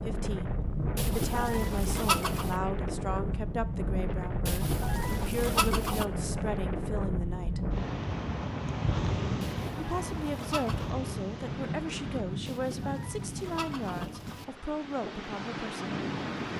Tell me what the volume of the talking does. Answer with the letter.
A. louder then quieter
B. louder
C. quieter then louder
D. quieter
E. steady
E.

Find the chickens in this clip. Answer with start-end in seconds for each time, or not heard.
0.9-2.5, 4.5-6.0, 9.4-10.9, 12.4-14.4.